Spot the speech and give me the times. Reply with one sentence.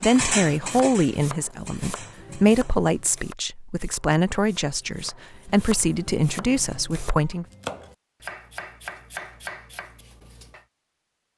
The speech can be heard from 0.0 to 7.5 s.